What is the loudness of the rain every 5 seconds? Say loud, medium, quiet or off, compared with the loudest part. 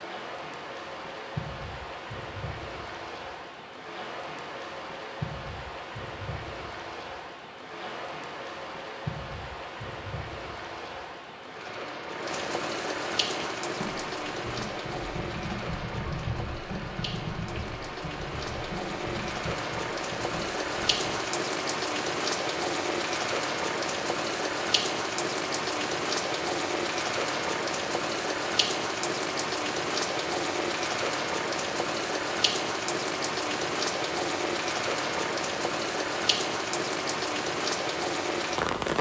medium, medium, medium, medium, loud, loud, loud, loud.